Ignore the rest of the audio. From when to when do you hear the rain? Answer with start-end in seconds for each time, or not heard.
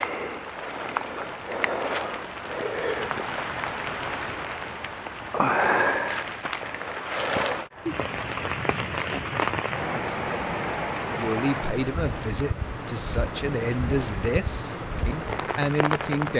0.0-16.3.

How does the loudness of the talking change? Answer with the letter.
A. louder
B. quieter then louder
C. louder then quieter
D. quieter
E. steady
E.